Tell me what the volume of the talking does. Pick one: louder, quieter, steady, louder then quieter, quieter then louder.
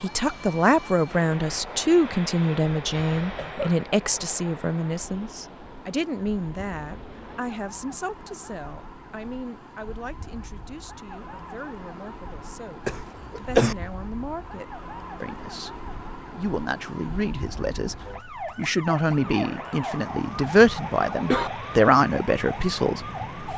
quieter then louder.